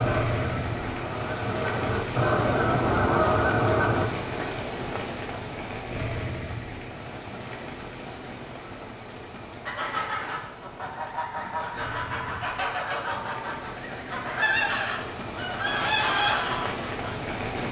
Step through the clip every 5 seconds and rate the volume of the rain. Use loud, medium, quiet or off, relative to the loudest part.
loud, medium, medium, loud.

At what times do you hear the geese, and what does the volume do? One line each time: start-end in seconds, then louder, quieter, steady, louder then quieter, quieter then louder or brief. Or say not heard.
0.0-4.1 louder
9.7-17.3 louder.